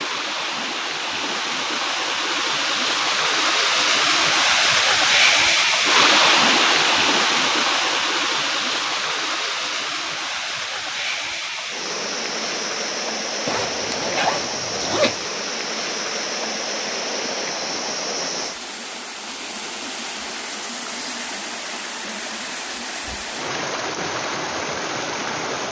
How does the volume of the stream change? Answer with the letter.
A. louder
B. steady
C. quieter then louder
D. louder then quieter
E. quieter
E.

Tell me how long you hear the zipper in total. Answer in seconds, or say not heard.
2 s.